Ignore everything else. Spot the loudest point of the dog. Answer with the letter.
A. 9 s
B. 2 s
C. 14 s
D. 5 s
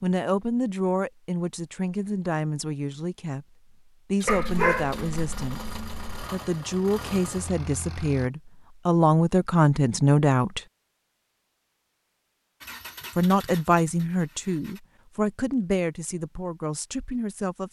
D.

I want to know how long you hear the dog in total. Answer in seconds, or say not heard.
2 s.